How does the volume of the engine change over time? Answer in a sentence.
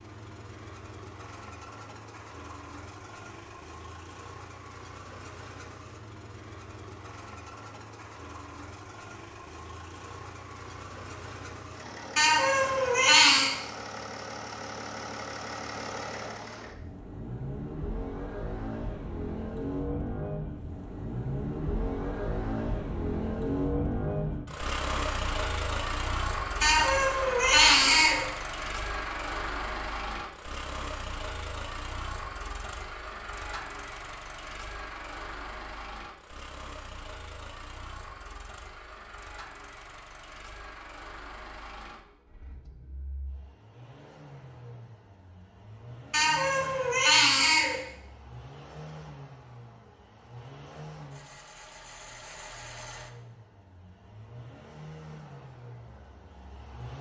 The loudness of the engine goes up, then down.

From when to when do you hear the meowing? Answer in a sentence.
The meowing can be heard from 12.2 to 13.5 s, from 26.6 to 28.2 s and from 46.1 to 47.8 s.